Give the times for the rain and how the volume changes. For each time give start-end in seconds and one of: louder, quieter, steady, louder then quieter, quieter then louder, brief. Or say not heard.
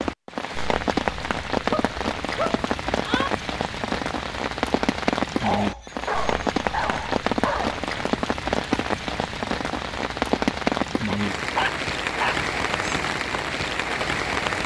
0.0-14.6 steady.